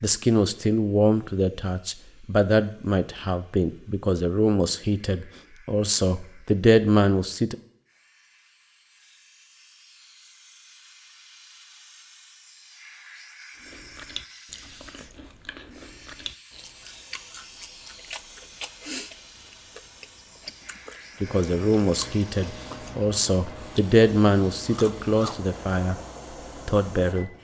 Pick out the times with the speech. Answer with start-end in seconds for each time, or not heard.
0.0-7.5, 21.2-25.9, 26.6-27.3.